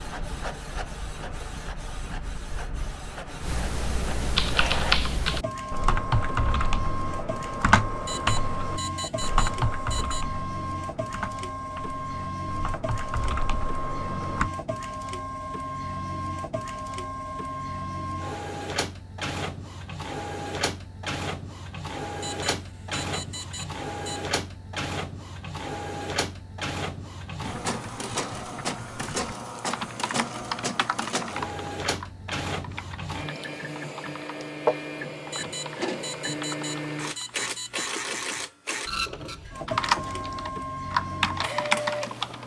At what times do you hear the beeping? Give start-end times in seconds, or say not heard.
8.1-10.2, 22.2-24.2, 35.3-37.9.